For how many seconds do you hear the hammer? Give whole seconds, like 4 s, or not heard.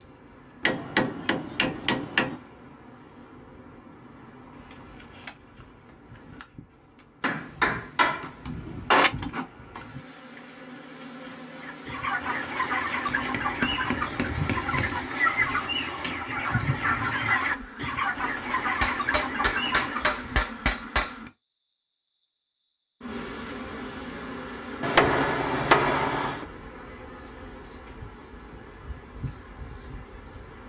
10 s.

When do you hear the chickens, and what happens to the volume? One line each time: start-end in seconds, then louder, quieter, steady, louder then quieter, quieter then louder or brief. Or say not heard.
11.6-20.4 steady.